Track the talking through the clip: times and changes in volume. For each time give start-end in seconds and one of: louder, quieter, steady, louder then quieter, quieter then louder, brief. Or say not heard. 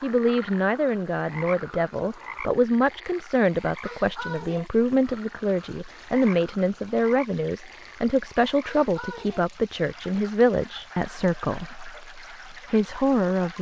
0.0-13.5 steady.